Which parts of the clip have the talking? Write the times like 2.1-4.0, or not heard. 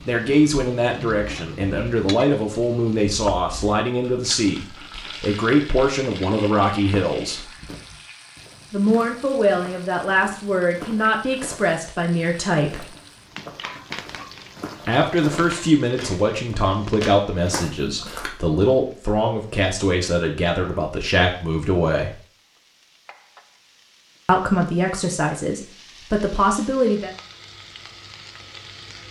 0.1-7.5, 8.7-12.8, 14.8-22.1, 24.2-27.1.